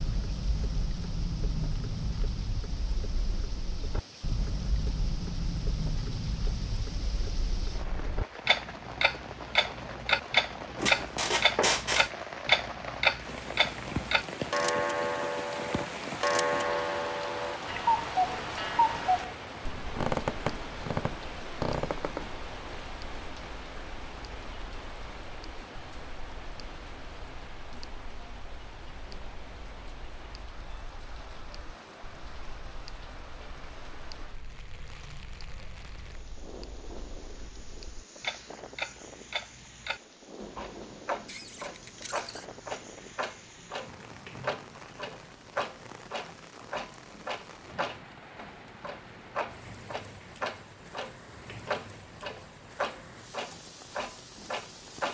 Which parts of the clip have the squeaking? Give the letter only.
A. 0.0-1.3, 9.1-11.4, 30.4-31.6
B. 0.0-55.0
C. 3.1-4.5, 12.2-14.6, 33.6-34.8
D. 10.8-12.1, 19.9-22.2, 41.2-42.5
D.